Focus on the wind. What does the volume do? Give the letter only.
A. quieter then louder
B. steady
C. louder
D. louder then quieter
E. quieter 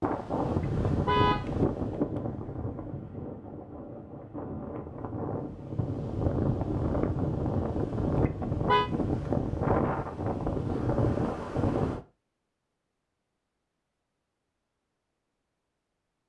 A.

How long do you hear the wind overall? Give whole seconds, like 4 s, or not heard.
12 s.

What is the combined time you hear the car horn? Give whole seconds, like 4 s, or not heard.
2 s.